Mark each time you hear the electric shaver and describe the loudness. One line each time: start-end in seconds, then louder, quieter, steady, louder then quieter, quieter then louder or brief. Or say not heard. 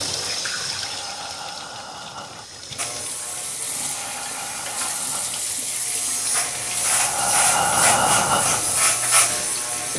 2.8-9.9 louder.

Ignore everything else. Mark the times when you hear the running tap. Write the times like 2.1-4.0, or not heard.
0.0-9.9.